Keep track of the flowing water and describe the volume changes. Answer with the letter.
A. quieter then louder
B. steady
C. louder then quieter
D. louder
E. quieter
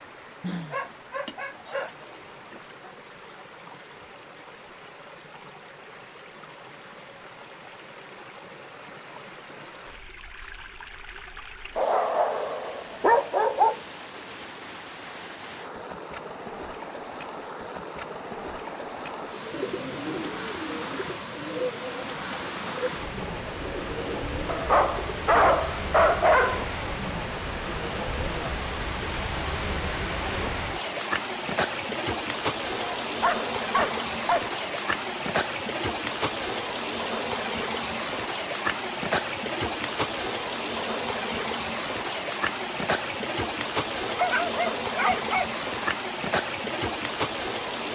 D.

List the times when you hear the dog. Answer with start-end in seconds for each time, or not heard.
0.4-1.9, 11.8-13.8, 24.4-26.7, 33.0-34.5, 44.0-45.5.